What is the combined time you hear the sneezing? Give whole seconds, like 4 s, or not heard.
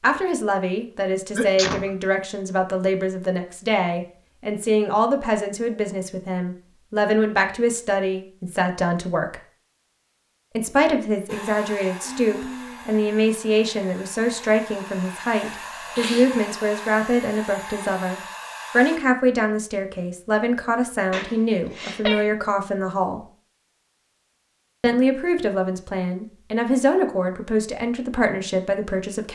3 s.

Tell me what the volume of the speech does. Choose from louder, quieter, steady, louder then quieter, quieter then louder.
steady.